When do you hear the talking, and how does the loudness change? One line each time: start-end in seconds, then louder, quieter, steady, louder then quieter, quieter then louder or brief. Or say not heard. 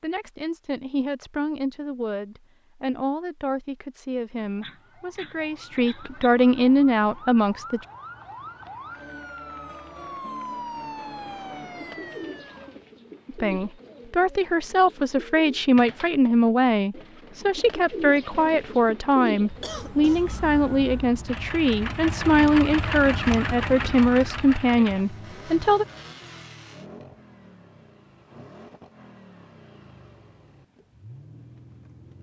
0.0-7.8 louder
13.2-25.9 steady.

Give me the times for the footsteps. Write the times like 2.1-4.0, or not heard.
not heard.